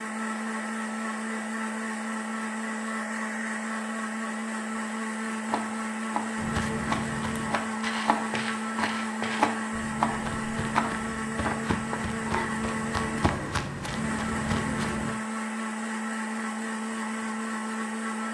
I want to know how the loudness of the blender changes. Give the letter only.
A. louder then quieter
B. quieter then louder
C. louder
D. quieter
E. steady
E.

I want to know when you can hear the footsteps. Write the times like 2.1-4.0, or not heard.
6.3-15.2.